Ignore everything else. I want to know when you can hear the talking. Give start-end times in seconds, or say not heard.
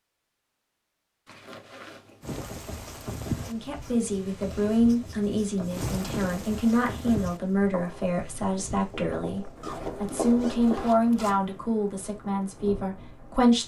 3.5-13.6.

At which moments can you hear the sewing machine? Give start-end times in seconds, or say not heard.
not heard.